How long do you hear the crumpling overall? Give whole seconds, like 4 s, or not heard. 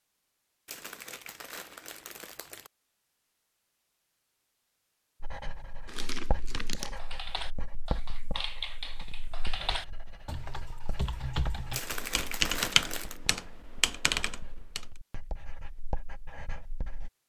5 s.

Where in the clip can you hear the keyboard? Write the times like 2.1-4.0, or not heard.
6.8-14.8.